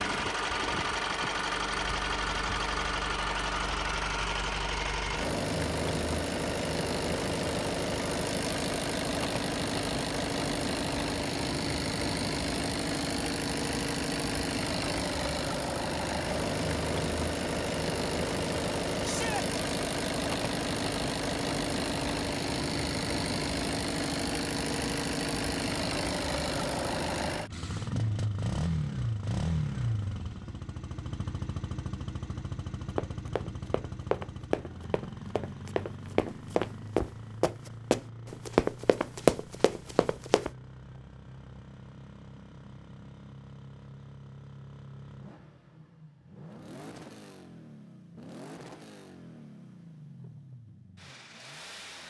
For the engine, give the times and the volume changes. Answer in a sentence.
You can hear the engine from 0.0 to 52.0 s, getting quieter.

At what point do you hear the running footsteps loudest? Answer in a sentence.
The loudest moment of the running footsteps is at 39 seconds.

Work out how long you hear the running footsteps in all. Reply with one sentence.
The running footsteps can be heard for 8 seconds in total.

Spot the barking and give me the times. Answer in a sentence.
The barking can't be heard in this clip.